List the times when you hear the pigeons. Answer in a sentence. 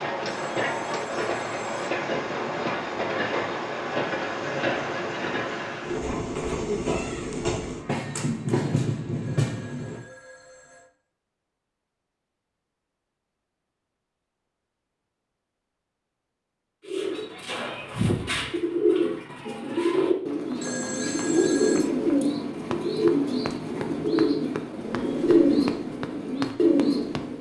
The pigeons can be heard from 16.9 to 27.3 s.